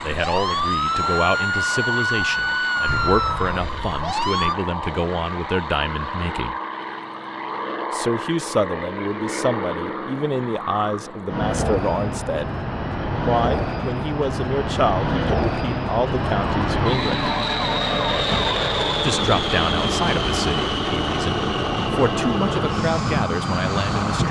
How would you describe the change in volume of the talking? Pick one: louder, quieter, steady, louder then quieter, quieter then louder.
steady.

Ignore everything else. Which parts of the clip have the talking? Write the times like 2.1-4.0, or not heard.
0.0-6.5, 7.9-12.5, 13.2-17.3, 19.0-24.2.